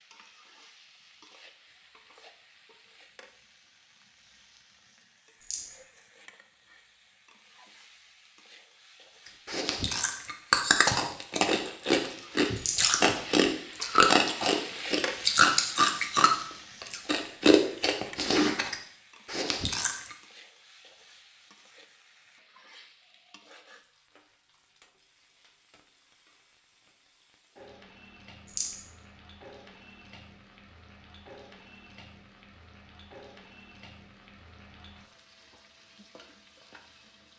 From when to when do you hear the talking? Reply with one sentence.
The talking can't be heard in this clip.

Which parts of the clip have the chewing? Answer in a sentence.
The chewing can be heard from 9.4 to 20.1 s.